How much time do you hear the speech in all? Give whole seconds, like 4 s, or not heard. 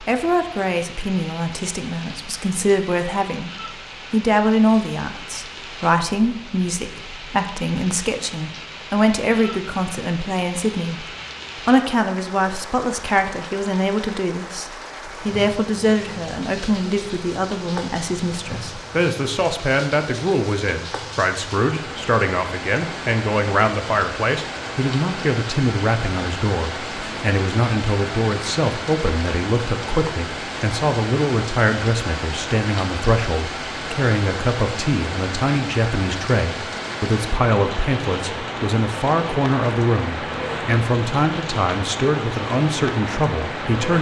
43 s.